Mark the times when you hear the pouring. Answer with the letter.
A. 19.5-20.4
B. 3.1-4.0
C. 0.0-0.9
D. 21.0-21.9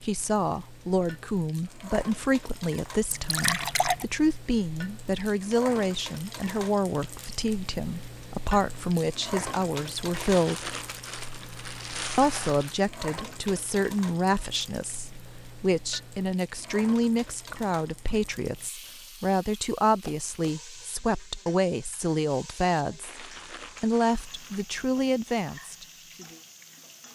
B.